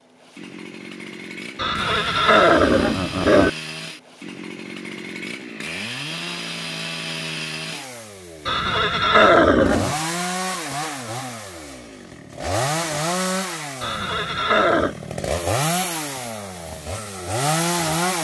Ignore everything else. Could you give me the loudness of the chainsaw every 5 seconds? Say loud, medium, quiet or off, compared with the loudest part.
medium, medium, loud, loud.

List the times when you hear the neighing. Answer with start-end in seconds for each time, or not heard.
1.6-3.5, 8.4-9.9, 13.8-14.9.